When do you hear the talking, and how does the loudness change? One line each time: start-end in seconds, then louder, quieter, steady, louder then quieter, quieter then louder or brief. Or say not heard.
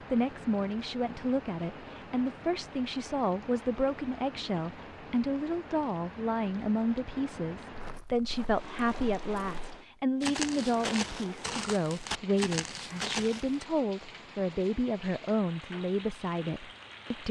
0.1-17.2 steady.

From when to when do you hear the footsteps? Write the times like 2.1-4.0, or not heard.
7.7-13.7.